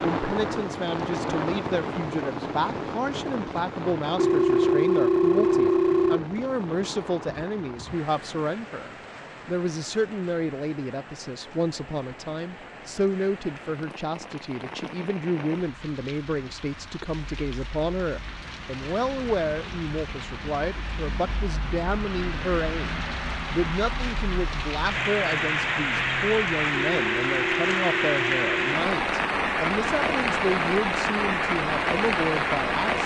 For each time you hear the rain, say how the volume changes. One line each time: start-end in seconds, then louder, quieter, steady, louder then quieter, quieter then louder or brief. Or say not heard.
0.0-33.0 quieter then louder.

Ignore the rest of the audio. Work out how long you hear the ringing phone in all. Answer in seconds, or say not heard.
4 s.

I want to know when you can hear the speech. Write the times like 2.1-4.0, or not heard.
0.0-33.0.